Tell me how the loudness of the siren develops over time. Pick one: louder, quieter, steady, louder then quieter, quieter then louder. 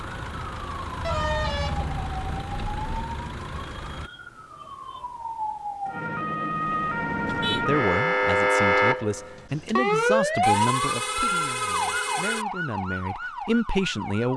louder then quieter.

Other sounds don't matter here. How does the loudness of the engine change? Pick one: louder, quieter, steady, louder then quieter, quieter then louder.
steady.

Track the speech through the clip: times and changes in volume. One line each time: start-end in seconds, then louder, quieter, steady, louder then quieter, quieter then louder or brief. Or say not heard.
7.3-14.3 quieter then louder.